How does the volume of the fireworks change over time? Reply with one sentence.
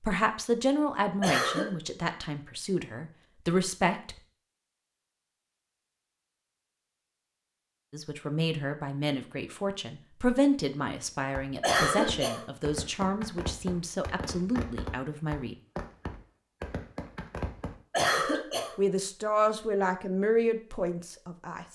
The loudness of the fireworks stays about the same.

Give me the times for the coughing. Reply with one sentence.
The coughing can be heard from 1.2 to 1.7 s, from 11.6 to 12.4 s and from 17.9 to 18.8 s.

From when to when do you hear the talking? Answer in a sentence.
The talking can be heard from 0.0 to 4.2 s, from 7.9 to 15.6 s and from 18.1 to 21.7 s.